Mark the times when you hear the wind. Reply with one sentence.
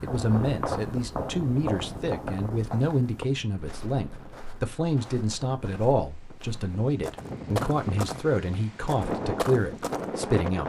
You can hear the wind from 0.0 to 10.6 s.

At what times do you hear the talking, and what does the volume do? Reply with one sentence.
You can hear the talking from 0.0 to 10.6 s, at a steady volume.